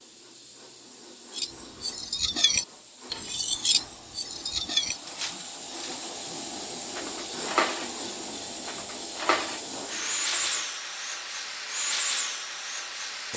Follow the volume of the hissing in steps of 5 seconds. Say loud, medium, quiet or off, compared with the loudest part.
quiet, medium, loud.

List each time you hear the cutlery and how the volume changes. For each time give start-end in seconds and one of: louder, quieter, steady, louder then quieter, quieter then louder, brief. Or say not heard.
1.4-10.6 quieter then louder.